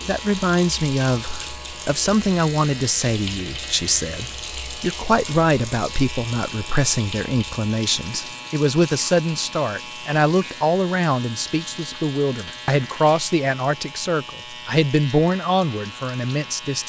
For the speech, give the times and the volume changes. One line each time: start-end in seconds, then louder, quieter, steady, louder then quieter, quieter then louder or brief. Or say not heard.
0.1-16.8 steady.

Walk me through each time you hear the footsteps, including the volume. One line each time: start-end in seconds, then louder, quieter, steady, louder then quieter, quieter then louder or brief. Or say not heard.
not heard.